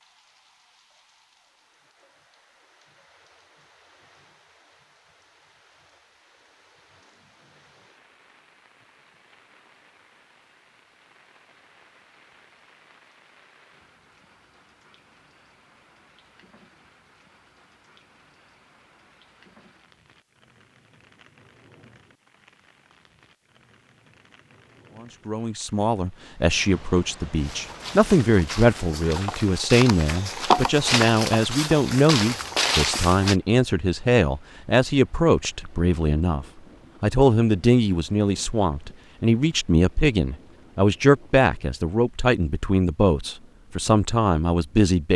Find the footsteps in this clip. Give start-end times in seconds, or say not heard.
27.4-33.4.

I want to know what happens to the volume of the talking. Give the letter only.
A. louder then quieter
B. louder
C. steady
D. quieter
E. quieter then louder
C.